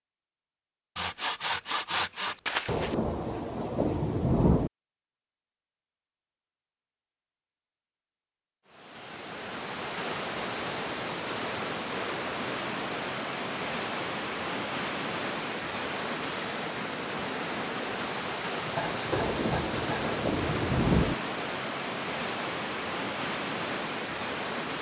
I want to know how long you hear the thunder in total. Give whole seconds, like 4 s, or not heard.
4 s.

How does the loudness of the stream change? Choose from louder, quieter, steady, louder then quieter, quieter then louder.
steady.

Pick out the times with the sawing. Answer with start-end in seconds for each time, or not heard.
0.9-3.0, 18.6-20.2.